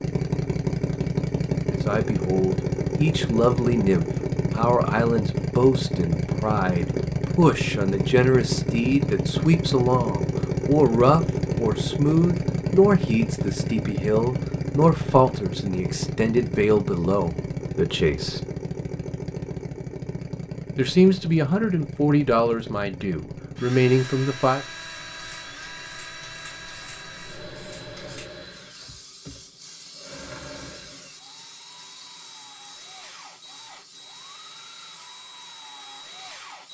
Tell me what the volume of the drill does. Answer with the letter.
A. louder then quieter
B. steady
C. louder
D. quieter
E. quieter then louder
D.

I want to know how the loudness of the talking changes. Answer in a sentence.
The volume of the talking stays about the same.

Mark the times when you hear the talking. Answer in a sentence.
You can hear the talking from 1.7 to 18.4 s and from 20.8 to 24.6 s.